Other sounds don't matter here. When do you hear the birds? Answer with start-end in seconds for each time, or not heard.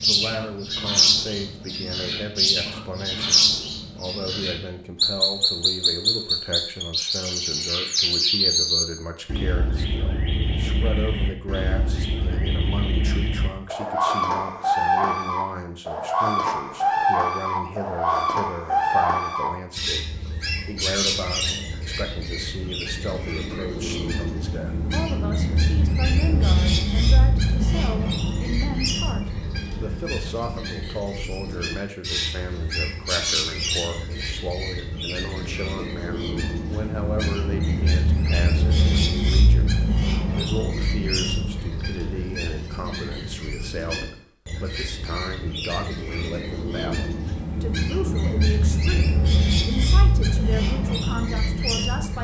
0.0-52.1.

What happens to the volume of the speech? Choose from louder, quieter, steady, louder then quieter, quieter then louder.
steady.